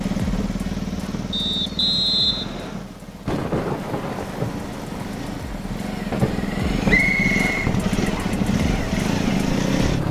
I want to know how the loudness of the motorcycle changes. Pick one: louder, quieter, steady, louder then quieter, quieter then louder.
quieter then louder.